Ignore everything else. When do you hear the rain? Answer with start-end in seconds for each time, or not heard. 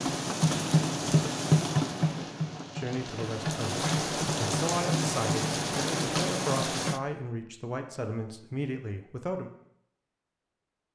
0.0-7.0.